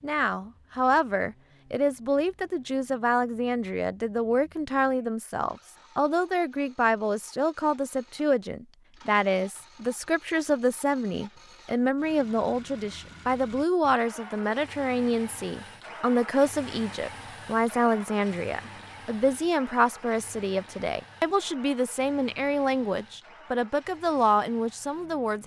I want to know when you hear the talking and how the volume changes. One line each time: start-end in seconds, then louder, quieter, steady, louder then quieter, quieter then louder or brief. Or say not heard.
0.0-25.4 steady.